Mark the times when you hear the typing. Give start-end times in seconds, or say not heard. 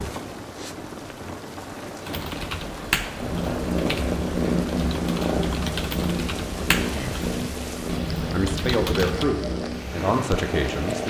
2.0-9.2.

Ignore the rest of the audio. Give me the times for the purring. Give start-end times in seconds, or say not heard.
3.1-11.0.